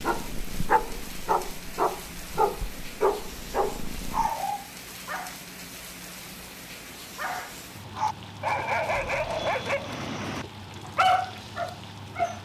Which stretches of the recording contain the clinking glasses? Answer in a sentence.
You can't hear the clinking glasses here.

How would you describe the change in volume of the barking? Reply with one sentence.
The volume of the barking stays about the same.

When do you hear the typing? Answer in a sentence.
You can't hear the typing here.